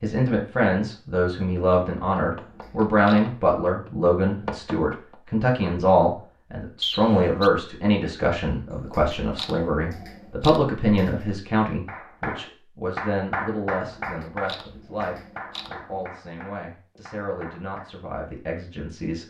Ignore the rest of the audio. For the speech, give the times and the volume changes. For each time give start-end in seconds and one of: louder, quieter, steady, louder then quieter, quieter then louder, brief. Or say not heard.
0.0-19.2 quieter.